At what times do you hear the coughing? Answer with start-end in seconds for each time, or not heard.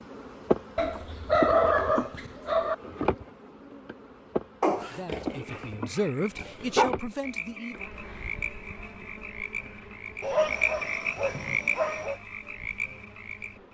not heard.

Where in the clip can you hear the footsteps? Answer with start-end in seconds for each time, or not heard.
not heard.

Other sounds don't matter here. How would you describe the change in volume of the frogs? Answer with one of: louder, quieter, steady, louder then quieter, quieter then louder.
louder then quieter.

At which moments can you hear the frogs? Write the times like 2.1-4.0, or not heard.
5.5-13.7.